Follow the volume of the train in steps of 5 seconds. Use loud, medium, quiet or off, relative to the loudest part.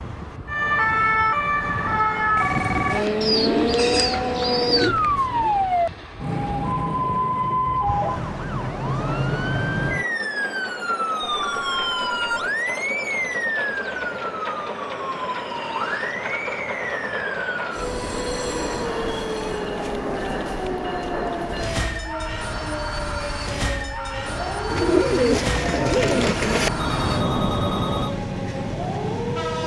medium, medium, loud, loud, loud, loud.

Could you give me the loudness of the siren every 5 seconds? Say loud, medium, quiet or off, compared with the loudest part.
loud, loud, medium, medium, medium, medium.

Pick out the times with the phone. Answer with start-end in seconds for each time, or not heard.
2.4-3.1, 11.4-12.5, 26.5-28.1.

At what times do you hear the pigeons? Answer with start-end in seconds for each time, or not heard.
3.2-5.0, 24.7-26.7.